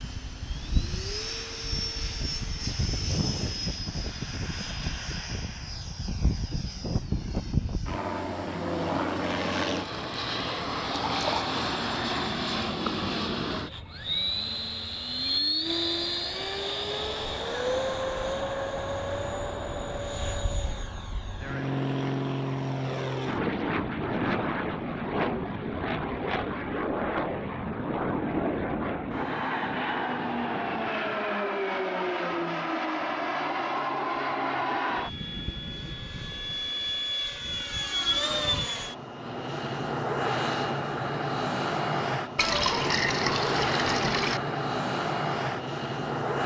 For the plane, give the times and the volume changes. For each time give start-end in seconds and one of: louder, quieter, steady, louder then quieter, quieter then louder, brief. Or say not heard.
0.0-46.4 steady.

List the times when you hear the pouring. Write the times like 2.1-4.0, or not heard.
11.1-11.5, 42.4-44.4.